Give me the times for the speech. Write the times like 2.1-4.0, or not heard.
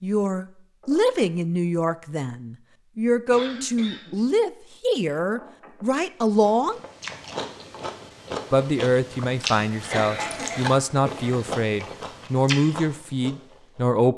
0.0-6.8, 8.5-14.1.